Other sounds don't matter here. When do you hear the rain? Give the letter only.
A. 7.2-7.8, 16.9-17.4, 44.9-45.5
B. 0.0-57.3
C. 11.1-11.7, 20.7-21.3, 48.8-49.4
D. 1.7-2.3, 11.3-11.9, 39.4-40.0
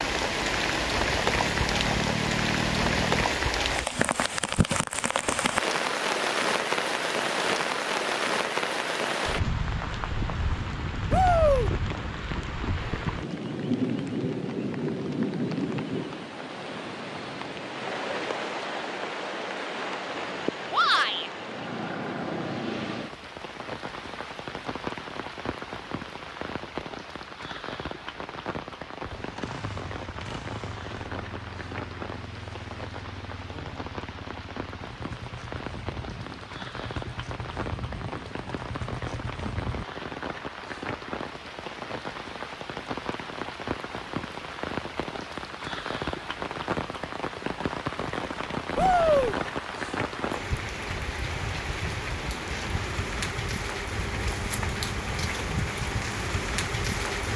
B.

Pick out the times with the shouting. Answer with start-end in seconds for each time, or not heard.
11.1-11.7, 20.7-21.3, 48.8-49.4.